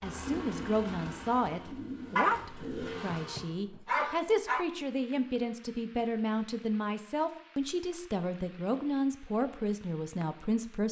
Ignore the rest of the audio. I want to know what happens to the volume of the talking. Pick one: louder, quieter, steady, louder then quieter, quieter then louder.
steady.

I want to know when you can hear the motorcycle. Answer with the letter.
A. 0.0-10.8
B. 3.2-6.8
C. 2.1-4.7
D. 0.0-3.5
D.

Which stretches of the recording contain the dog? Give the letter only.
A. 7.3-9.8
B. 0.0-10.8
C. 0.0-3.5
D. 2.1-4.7
D.